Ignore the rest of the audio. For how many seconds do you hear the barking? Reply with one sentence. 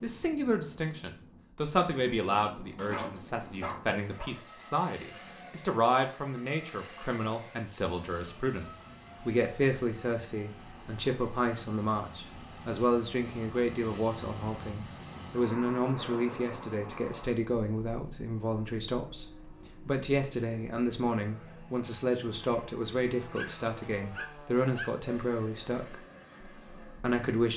You can hear the barking for 3 seconds altogether.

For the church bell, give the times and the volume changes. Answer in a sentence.
The church bell can't be heard in this clip.